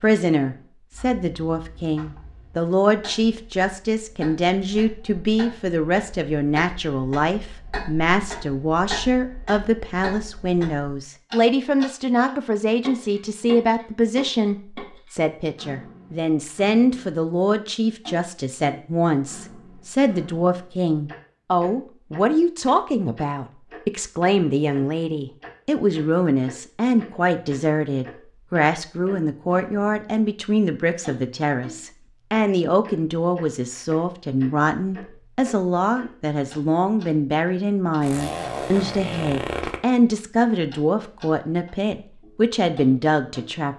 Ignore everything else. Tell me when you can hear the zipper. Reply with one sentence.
You can hear the zipper from 38.0 to 39.8 s.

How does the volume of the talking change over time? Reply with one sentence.
The loudness of the talking stays about the same.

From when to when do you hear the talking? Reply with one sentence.
You can hear the talking from 0.0 to 43.7 s.